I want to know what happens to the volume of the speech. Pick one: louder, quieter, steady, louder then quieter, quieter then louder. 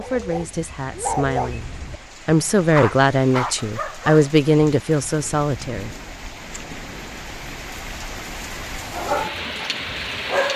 louder.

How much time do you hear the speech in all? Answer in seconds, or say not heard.
6 s.